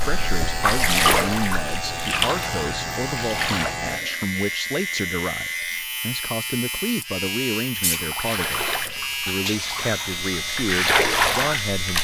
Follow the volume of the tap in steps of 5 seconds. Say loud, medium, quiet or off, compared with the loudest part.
loud, medium, loud.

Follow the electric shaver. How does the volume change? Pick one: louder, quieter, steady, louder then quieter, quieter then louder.
steady.